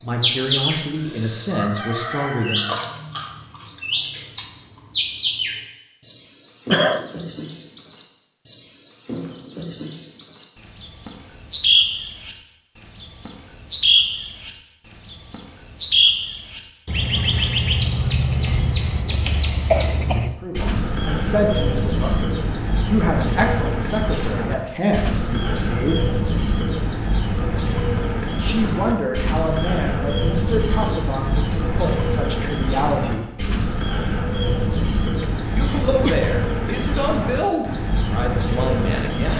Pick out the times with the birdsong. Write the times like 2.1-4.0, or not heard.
0.0-39.3.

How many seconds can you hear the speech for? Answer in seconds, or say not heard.
17 s.